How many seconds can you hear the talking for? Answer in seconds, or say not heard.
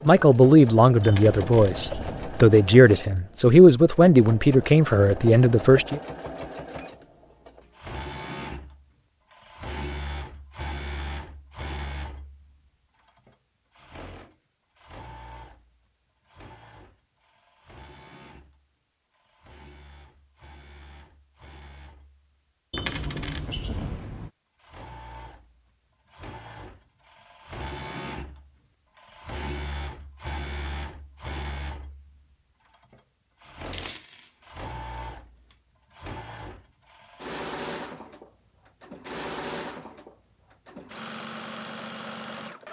6 s.